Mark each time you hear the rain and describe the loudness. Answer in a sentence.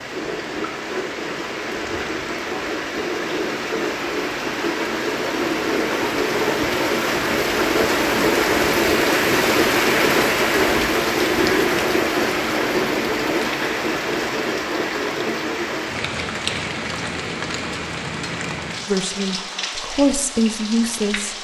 The rain can be heard from 0.0 to 21.3 s, getting louder then quieter.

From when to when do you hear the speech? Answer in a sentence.
The speech can be heard from 18.9 to 21.3 s.